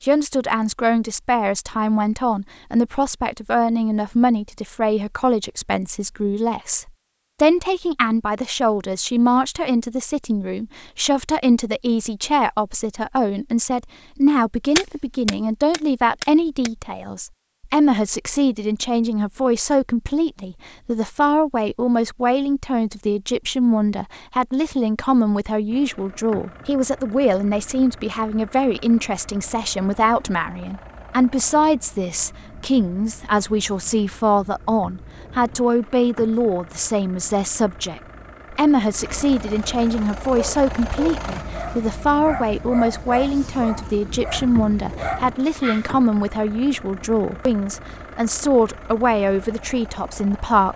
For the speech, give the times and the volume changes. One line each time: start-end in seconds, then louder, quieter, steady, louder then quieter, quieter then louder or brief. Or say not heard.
0.0-50.7 steady.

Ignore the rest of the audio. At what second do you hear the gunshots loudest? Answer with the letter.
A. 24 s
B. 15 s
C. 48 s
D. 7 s
B.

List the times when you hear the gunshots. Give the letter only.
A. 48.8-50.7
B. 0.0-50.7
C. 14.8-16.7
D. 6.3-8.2
C.